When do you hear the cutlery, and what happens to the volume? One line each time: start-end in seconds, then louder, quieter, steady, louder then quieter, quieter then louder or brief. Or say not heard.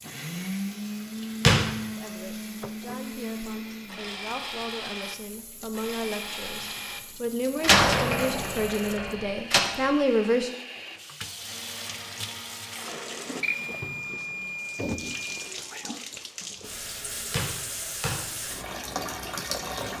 not heard.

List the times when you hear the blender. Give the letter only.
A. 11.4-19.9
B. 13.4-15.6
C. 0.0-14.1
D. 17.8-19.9
C.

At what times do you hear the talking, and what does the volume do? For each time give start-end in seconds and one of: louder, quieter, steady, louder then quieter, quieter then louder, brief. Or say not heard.
1.9-10.5 louder.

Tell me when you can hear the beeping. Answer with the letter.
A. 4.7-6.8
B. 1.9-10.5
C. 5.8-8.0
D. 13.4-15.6
D.